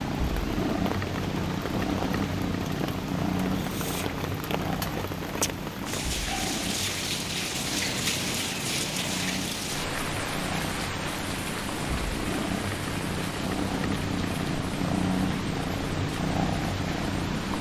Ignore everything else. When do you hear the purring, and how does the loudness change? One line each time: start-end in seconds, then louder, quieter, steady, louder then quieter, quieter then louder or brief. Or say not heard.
0.0-17.5 quieter then louder.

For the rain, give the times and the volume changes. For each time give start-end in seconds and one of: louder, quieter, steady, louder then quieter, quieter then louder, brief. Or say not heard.
0.2-17.5 louder then quieter.